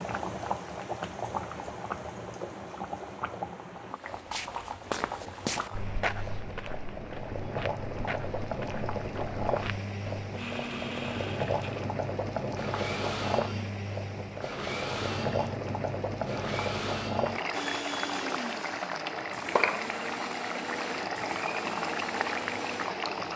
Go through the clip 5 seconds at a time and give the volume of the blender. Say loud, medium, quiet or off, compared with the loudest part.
off, off, loud, loud, loud.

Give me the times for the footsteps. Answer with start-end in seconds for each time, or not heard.
4.0-10.3.